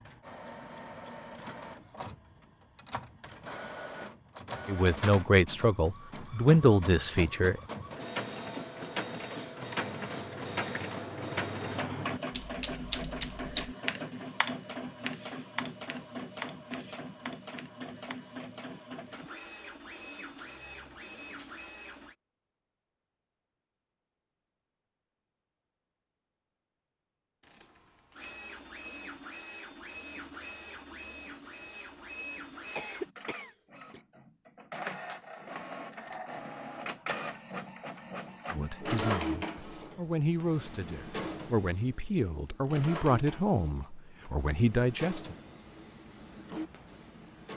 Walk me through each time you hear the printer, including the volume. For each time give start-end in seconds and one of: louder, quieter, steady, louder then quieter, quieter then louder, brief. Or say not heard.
0.0-22.1 louder then quieter
28.1-47.5 louder then quieter.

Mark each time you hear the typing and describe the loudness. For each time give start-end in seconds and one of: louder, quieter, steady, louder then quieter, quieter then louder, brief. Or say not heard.
9.6-18.2 louder then quieter.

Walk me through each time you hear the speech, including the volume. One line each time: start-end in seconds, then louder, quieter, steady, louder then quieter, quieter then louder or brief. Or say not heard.
4.7-7.6 brief
38.5-45.4 louder.